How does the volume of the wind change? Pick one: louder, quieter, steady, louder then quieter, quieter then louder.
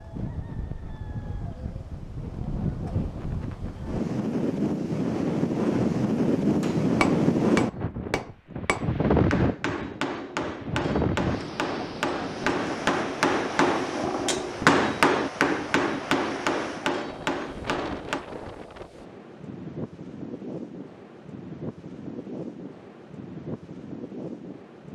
louder then quieter.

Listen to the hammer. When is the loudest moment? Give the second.
15 s.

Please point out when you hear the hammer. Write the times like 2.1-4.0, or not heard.
6.6-18.2.